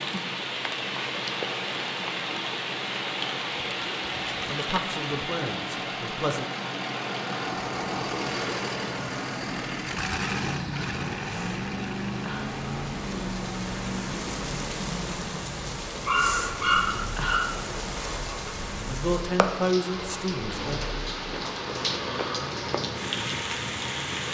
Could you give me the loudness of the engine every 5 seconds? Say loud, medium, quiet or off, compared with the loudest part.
medium, loud, loud, medium, medium.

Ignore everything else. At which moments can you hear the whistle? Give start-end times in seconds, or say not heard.
not heard.